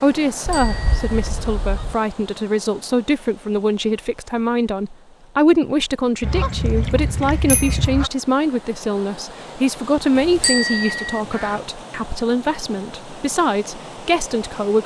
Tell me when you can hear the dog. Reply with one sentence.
You can't hear the dog here.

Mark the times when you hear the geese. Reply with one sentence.
You can hear the geese from 0.5 to 1.9 s, from 6.2 to 8.1 s and from 10.2 to 11.7 s.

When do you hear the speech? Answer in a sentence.
The speech can be heard from 0.0 to 14.8 s.